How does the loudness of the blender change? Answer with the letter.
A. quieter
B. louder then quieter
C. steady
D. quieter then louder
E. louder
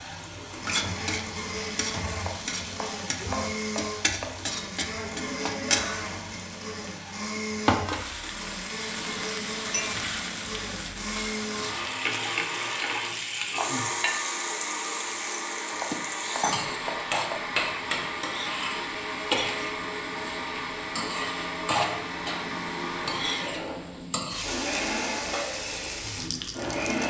C.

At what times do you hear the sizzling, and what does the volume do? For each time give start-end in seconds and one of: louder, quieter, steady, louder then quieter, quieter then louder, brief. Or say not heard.
0.0-27.0 steady.